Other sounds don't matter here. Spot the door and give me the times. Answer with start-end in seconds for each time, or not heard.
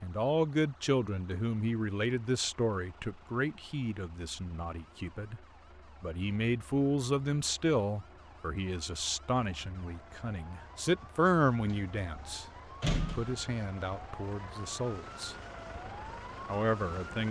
11.7-13.3.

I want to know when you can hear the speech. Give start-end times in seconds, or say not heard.
0.0-5.4, 6.0-15.8, 16.4-17.2.